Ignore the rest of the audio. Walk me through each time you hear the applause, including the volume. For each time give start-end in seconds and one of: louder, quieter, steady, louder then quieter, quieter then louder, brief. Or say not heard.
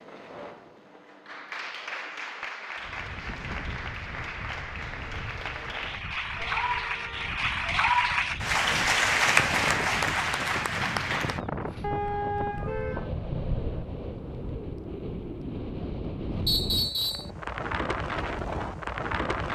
0.0-11.4 louder.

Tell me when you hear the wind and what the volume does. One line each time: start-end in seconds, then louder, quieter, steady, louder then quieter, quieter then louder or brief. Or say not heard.
2.8-19.5 louder.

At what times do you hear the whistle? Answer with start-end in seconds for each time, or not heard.
16.4-17.3.